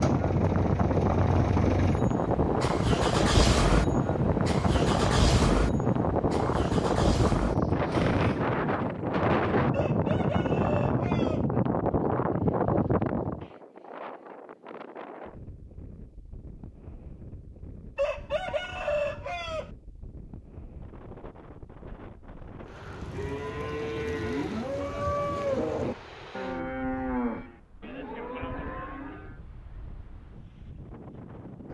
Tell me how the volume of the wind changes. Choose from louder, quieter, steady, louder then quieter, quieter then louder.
quieter.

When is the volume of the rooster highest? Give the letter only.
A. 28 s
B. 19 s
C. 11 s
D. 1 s
B.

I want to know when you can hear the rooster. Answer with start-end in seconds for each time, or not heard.
9.7-11.4, 17.9-19.7.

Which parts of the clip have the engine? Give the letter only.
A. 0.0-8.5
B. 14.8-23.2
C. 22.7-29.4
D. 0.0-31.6
A.